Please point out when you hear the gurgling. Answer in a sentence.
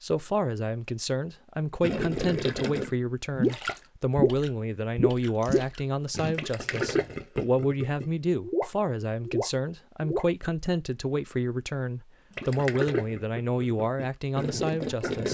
The gurgling can be heard from 1.8 to 10.3 s and from 12.3 to 15.2 s.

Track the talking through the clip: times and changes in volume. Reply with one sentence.
The talking can be heard from 0.0 to 15.2 s, at a steady volume.